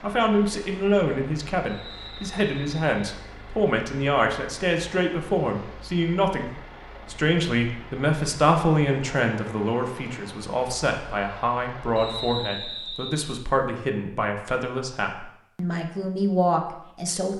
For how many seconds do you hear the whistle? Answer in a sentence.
You can hear the whistle for 3 seconds altogether.